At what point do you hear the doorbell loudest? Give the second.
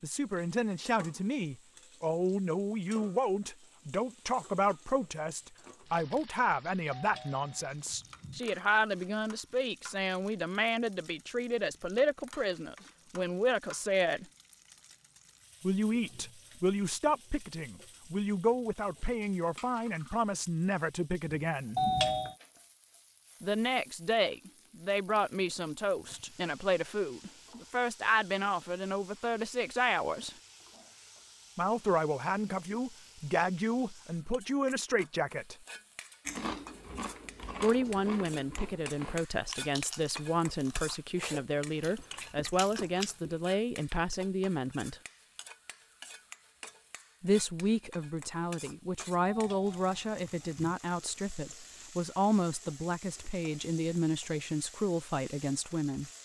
22 s.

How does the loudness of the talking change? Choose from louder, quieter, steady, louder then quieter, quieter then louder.
steady.